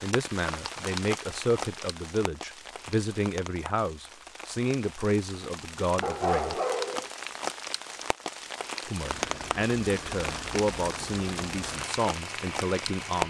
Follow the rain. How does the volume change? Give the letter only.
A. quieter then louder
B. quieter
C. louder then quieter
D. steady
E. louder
A.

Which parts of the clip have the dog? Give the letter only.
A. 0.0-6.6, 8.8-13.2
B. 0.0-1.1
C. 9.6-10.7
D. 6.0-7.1
D.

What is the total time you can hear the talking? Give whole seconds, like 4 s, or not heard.
11 s.